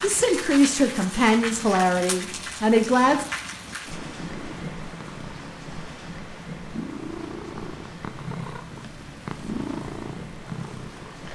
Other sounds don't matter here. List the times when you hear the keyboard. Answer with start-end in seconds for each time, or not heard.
not heard.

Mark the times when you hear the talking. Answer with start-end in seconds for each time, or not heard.
0.0-3.2.